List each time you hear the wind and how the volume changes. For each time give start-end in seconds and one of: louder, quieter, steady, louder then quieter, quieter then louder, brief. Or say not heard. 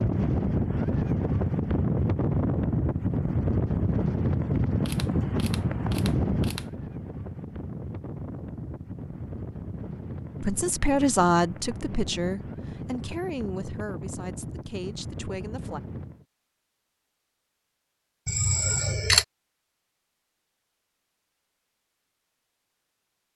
0.0-16.2 quieter.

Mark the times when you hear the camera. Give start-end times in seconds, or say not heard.
4.8-6.7, 18.2-19.2.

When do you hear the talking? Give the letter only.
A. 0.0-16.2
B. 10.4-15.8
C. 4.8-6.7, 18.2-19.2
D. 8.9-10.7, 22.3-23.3
B.